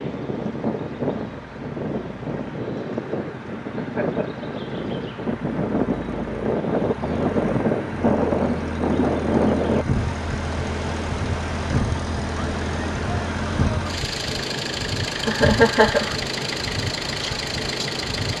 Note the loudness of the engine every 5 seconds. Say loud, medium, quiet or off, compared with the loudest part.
quiet, medium, loud, loud.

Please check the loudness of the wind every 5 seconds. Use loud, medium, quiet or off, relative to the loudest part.
medium, loud, medium, medium.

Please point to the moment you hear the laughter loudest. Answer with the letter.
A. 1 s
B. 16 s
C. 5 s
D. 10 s
B.